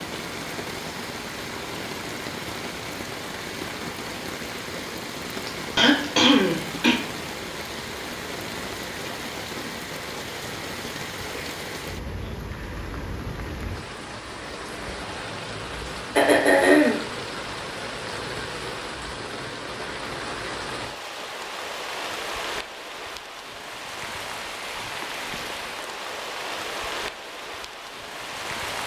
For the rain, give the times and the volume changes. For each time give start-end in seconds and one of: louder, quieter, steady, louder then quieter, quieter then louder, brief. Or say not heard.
0.0-28.8 steady.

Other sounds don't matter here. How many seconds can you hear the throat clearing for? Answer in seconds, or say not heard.
2 s.